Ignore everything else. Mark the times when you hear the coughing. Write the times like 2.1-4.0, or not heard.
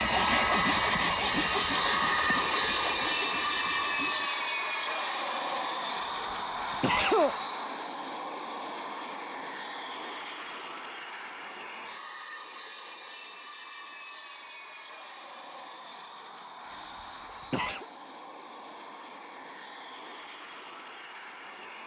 6.0-7.3, 16.6-17.9.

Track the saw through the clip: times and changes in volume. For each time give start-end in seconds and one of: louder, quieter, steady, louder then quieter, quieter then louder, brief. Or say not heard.
0.0-4.3 quieter.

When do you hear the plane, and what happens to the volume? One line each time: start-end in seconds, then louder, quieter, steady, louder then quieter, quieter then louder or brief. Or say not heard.
0.0-21.8 quieter.